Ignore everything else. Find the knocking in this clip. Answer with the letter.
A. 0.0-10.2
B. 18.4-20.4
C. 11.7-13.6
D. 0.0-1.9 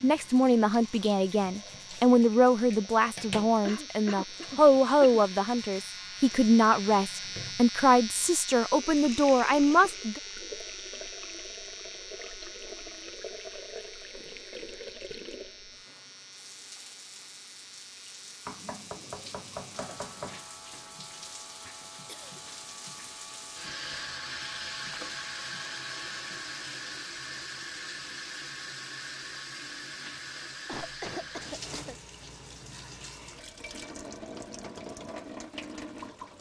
B.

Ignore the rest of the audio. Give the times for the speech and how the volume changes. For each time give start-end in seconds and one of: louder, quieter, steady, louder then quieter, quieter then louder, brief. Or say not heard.
0.0-10.2 steady.